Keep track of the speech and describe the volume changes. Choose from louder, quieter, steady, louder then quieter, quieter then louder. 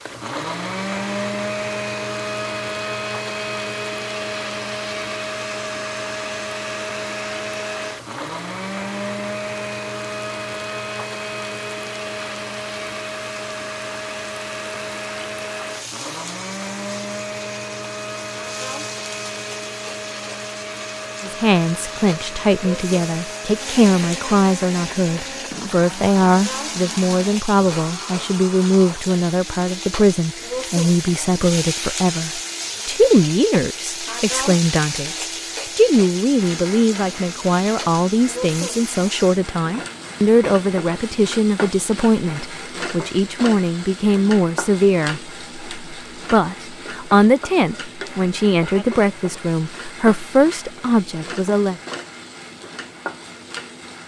steady.